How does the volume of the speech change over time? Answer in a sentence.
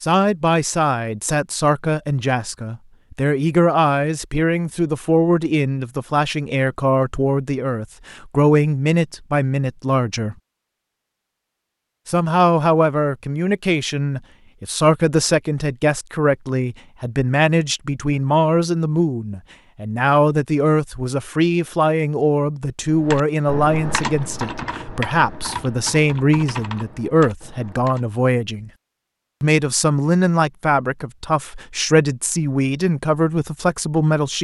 The loudness of the speech stays about the same.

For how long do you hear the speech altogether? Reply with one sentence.
The speech can be heard for 32 seconds in total.